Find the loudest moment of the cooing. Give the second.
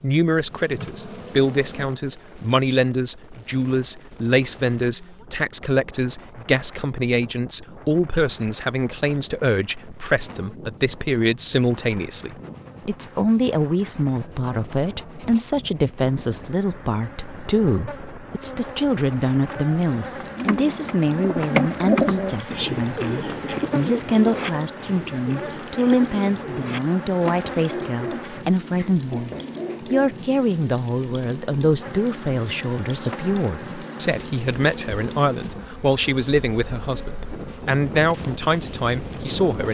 22 s.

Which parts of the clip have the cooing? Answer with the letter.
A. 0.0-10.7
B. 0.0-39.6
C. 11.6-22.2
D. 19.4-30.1
D.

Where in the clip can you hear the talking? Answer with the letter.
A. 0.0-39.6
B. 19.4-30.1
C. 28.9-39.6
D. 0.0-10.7
A.